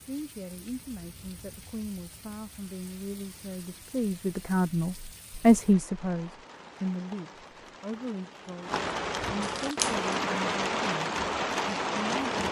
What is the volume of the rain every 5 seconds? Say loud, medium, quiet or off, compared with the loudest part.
quiet, medium, loud.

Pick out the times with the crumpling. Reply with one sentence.
You can hear the crumpling from 9.4 to 10.1 s.